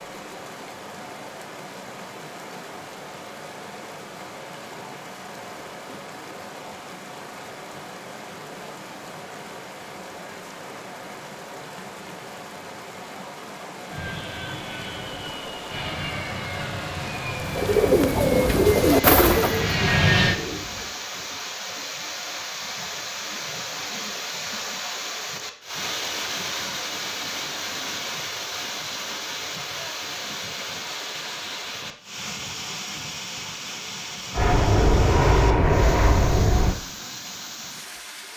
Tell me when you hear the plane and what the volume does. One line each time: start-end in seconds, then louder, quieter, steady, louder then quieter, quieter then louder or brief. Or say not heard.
13.9-20.4 louder
34.4-36.8 brief.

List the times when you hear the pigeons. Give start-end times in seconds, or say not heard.
17.4-21.0.